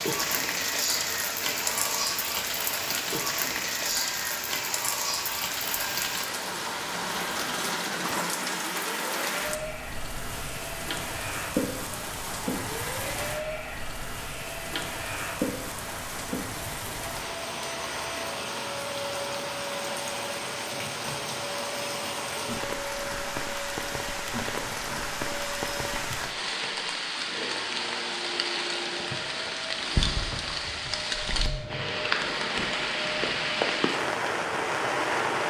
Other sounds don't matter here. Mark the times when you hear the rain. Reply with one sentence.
The rain can be heard from 0.0 to 35.4 s.